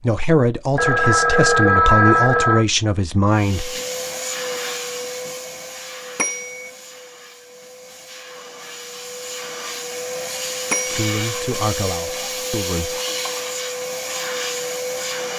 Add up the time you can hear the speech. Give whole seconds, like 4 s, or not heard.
6 s.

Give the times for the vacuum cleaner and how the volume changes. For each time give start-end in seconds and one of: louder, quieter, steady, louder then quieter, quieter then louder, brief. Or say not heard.
3.3-15.3 quieter then louder.